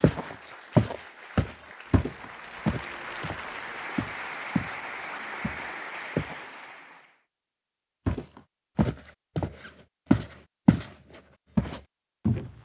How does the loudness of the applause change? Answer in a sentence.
The volume of the applause goes up.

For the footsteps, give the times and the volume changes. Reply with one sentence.
The footsteps can be heard from 0.0 to 4.8 s, getting quieter then louder; briefly from 5.4 to 6.5 s; briefly from 8.1 to 10.9 s; and briefly from 11.6 to 12.5 s.